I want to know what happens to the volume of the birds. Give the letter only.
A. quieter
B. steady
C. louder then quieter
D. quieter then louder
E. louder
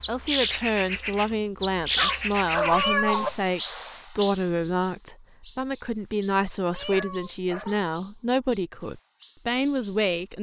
A.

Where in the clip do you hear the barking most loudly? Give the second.
3 s.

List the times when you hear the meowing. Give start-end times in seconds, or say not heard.
2.7-3.5, 6.7-7.8.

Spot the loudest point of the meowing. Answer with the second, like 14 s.
3 s.